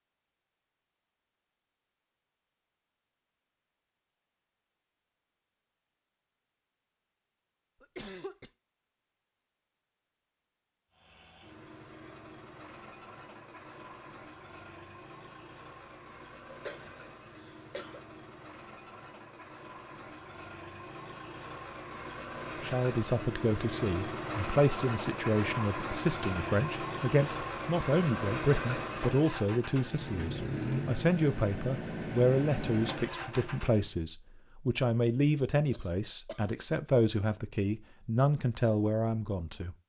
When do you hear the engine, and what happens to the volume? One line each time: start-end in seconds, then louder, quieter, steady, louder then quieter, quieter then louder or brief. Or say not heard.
10.9-33.9 louder.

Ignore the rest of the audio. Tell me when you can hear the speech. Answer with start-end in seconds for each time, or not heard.
22.6-39.8.